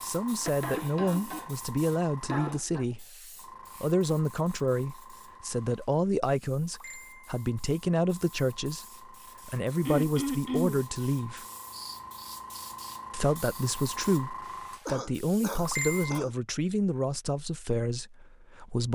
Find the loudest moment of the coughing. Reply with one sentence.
The loudest moment of the coughing is at 10 seconds.